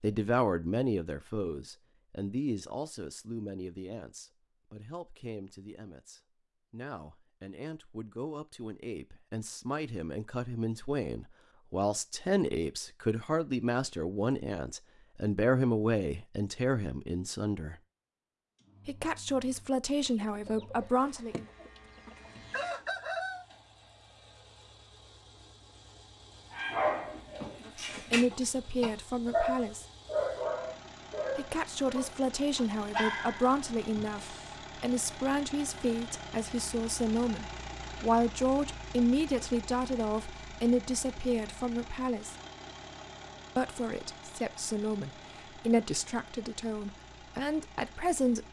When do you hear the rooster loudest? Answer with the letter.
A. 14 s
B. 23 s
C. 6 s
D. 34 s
B.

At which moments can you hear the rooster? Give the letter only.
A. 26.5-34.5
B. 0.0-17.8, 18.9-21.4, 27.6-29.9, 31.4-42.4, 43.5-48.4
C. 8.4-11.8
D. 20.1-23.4
D.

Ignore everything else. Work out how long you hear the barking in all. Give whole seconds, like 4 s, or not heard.
8 s.